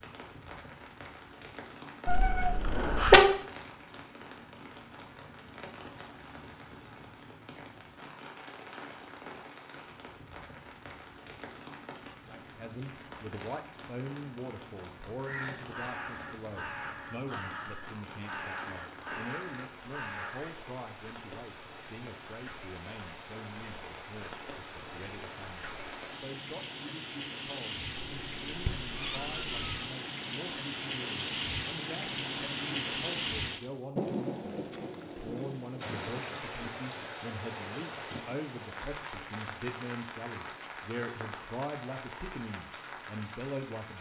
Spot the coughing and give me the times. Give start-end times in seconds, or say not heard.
not heard.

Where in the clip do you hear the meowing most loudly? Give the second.
3 s.